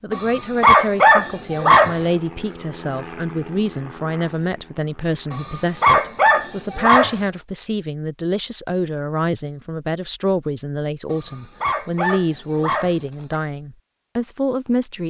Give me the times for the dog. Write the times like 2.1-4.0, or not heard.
0.1-2.0, 5.3-7.2, 11.1-13.4.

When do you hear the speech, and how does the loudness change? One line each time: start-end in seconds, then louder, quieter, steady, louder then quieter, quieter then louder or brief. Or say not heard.
0.0-15.0 steady.